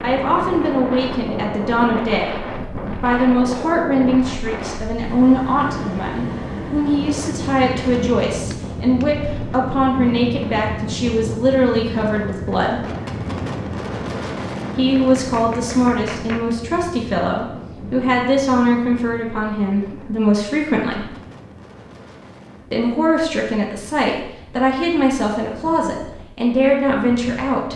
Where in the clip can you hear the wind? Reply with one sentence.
The wind can be heard from 0.0 to 27.7 s.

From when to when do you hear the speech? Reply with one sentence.
You can hear the speech from 0.0 to 2.4 s, from 3.0 to 12.8 s, from 14.8 to 21.1 s and from 22.7 to 27.7 s.